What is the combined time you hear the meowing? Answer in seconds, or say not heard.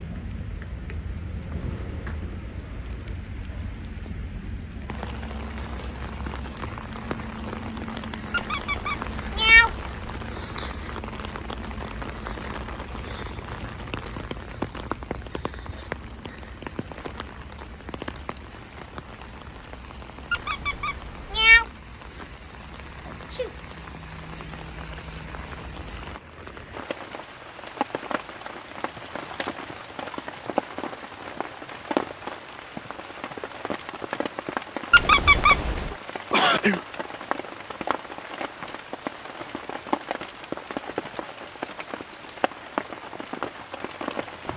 4 s.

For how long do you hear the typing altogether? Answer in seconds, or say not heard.
3 s.